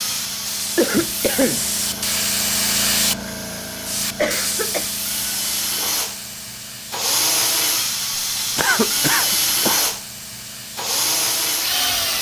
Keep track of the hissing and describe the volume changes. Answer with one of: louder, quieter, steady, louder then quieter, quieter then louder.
quieter.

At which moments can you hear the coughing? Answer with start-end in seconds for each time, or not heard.
0.8-1.6, 4.2-4.9, 8.6-9.8.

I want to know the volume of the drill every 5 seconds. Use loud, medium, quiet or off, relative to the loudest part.
medium, loud, loud.